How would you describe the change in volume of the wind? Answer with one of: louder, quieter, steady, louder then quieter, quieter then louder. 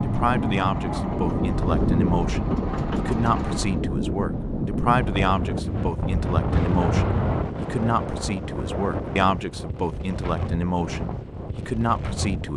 quieter.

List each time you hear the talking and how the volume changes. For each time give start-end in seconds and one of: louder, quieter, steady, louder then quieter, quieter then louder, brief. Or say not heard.
0.0-12.5 steady.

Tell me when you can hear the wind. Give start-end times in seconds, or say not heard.
0.0-12.5.